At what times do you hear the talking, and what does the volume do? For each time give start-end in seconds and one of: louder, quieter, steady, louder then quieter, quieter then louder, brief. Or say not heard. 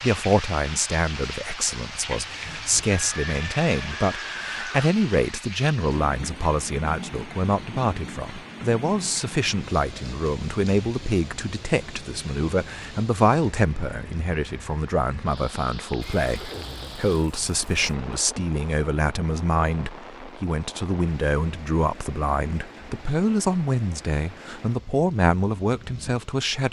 0.0-26.6 steady.